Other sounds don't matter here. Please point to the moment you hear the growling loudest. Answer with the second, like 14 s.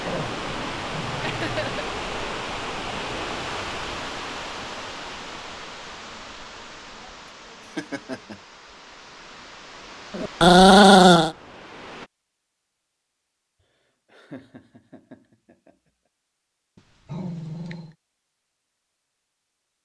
11 s.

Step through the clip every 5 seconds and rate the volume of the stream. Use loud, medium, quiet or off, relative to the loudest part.
loud, medium, medium, off.